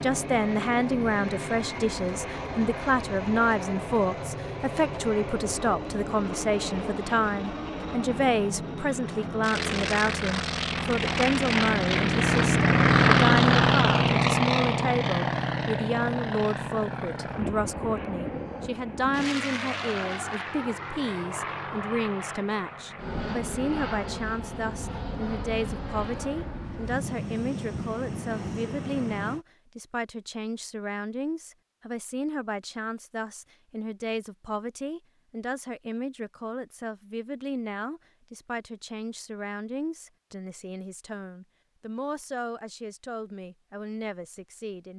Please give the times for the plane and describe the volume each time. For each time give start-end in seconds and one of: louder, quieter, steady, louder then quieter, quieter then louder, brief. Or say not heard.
0.0-29.4 louder then quieter.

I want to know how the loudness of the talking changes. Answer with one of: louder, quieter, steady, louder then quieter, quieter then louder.
quieter.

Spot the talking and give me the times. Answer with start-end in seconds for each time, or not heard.
0.0-44.9.